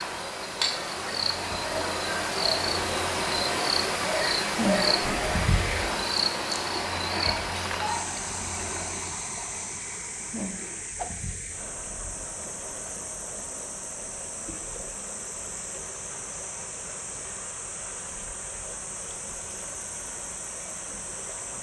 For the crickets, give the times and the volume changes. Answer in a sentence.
You can hear the crickets from 0.0 to 21.5 s, getting quieter.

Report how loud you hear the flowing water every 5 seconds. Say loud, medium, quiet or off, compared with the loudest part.
loud, loud, medium, medium, medium.